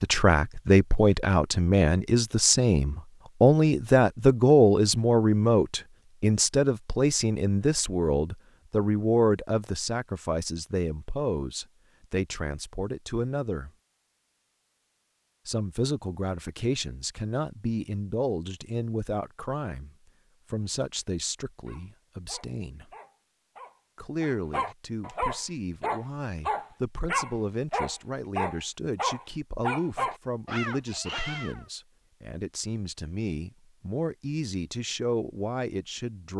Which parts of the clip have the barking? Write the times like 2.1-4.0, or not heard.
21.6-31.6.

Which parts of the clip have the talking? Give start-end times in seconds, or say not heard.
0.0-13.7, 15.4-19.9, 20.5-22.9, 23.9-36.3.